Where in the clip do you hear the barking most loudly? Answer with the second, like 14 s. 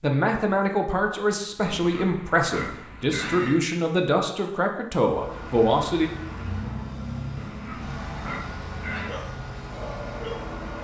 10 s.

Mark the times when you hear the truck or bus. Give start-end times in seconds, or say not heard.
5.0-10.7.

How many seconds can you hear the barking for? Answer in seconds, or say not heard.
2 s.